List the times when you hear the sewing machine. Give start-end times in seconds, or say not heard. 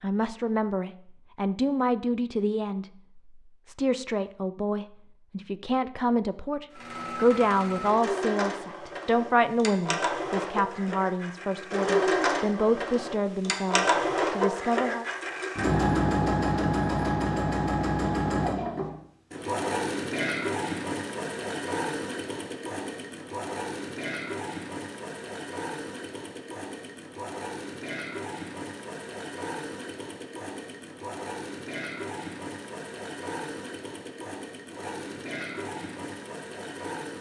6.7-37.1.